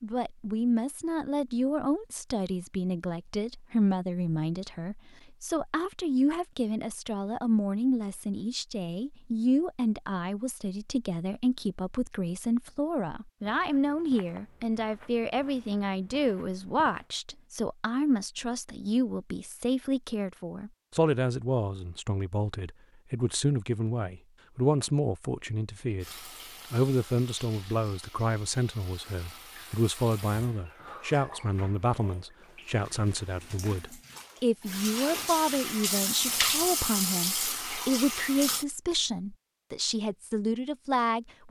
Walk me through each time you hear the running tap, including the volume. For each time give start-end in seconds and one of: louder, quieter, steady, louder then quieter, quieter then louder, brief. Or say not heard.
26.0-38.6 louder.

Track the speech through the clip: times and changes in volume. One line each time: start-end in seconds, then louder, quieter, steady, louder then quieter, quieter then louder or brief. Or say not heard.
0.0-26.1 steady
26.7-41.4 steady.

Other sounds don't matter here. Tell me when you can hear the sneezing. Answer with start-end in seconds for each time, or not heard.
not heard.